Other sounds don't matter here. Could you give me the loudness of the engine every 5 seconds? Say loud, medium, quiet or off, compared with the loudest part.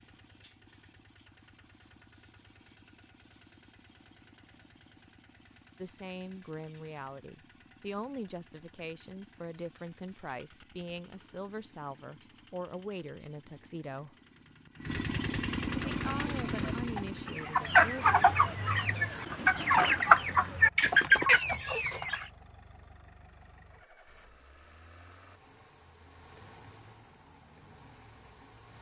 quiet, quiet, quiet, loud, quiet, quiet.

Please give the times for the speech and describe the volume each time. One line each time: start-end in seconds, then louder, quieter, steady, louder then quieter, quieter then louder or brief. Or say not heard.
5.8-14.2 steady
15.8-18.1 brief.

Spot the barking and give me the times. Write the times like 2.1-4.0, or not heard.
not heard.